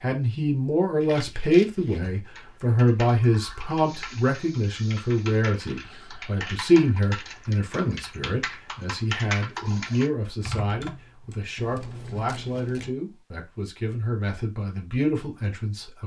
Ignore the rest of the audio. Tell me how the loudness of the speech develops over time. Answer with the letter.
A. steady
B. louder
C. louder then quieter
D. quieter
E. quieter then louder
D.